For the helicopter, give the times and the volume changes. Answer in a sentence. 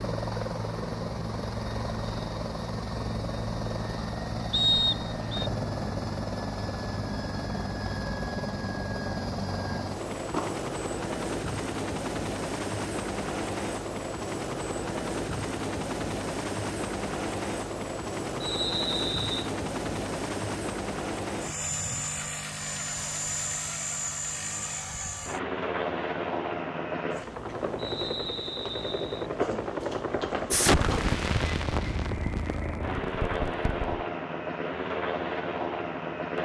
The helicopter can be heard from 0.0 to 36.4 s, at a steady volume.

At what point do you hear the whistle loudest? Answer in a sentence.
The volume of the whistle peaks at 5 seconds.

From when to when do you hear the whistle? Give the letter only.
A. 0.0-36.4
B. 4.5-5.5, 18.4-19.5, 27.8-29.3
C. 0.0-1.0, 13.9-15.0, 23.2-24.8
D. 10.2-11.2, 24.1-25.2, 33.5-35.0
B.